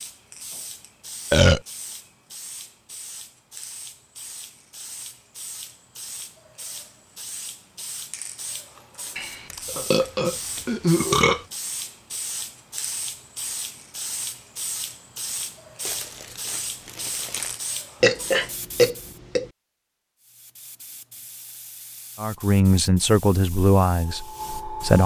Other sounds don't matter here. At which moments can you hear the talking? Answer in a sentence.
You can hear the talking from 22.2 to 25.0 s.